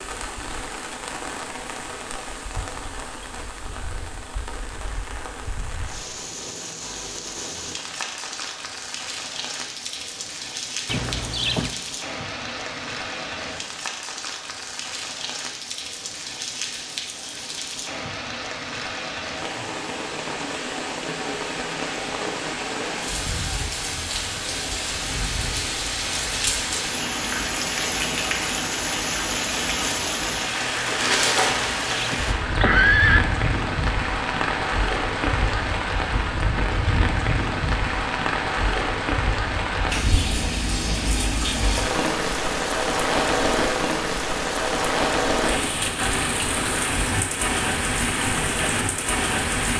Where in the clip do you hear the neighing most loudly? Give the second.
33 s.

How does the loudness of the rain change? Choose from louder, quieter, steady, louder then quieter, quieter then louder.
louder.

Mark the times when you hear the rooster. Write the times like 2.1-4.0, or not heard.
not heard.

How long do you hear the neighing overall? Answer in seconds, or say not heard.
3 s.